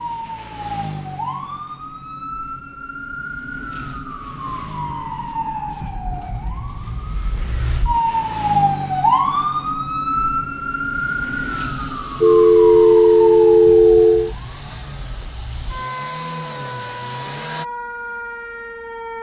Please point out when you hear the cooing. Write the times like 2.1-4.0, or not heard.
not heard.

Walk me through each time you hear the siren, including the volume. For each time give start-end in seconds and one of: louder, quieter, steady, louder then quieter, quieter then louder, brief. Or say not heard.
0.0-19.1 louder then quieter.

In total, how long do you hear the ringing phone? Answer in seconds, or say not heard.
2 s.